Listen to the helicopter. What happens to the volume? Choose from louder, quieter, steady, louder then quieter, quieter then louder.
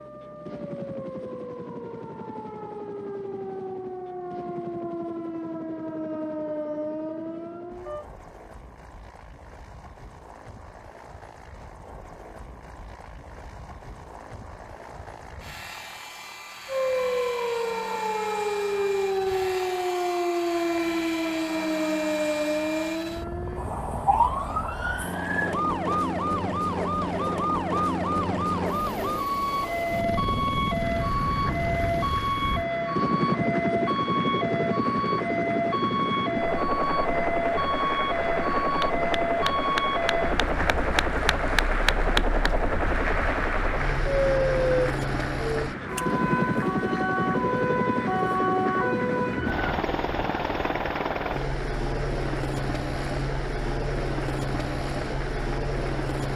louder.